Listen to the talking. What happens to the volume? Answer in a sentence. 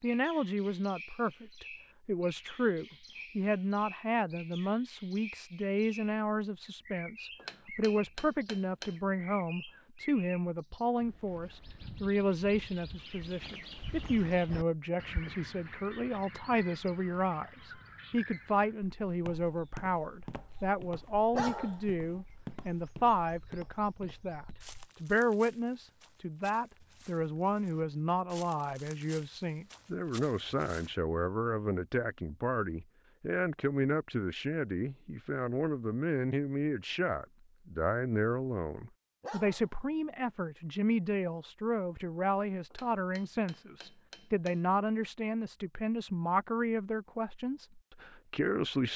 The volume of the talking stays about the same.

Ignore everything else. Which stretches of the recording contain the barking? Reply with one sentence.
You can hear the barking from 21.3 to 22.2 s and from 39.2 to 40.1 s.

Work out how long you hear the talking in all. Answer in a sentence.
You can hear the talking for 49 seconds altogether.